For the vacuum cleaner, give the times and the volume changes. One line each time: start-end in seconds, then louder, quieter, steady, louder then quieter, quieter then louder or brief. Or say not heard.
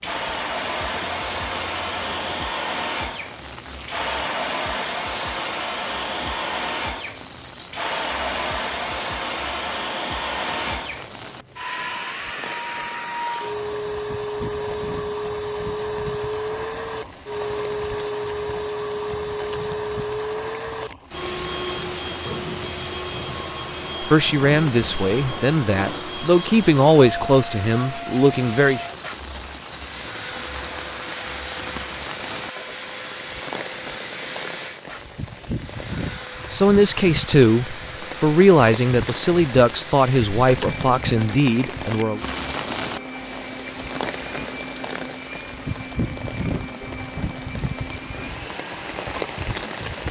0.0-49.8 quieter.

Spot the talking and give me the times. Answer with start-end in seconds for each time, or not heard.
24.0-28.9, 36.5-42.2.